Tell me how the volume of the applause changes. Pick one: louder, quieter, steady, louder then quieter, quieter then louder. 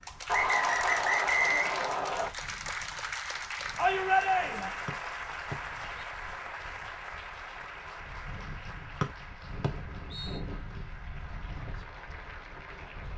quieter.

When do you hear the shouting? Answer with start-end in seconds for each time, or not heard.
3.8-4.7.